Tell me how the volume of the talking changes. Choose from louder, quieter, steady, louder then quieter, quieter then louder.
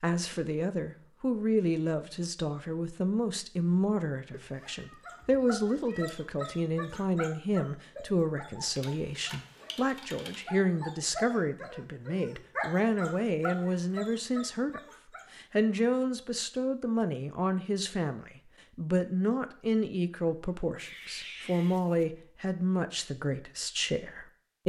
steady.